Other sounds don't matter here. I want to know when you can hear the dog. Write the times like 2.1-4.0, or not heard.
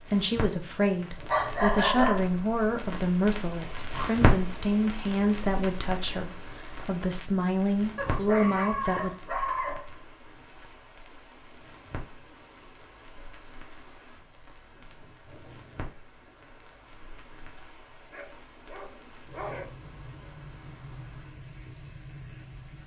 1.2-2.2, 8.0-10.1, 18.1-19.7.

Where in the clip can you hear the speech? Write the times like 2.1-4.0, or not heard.
0.0-9.1.